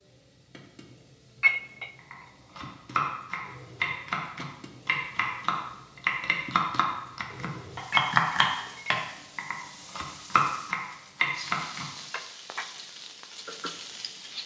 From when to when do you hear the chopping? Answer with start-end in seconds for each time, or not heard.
1.9-11.8.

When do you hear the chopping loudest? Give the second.
8 s.